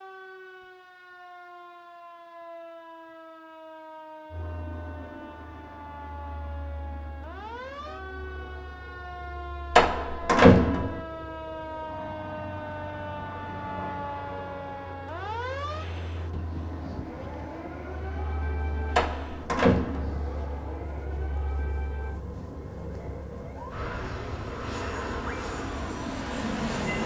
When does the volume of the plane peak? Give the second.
27 s.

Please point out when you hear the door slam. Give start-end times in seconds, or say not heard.
9.8-11.0, 18.9-20.2.